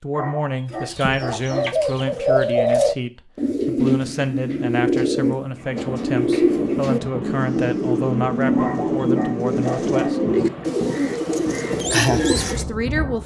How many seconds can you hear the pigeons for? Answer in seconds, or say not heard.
12 s.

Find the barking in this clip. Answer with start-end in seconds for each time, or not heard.
0.1-1.9, 8.6-10.4.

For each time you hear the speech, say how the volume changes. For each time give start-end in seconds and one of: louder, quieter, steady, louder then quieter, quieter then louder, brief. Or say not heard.
0.0-10.2 steady
12.5-13.2 brief.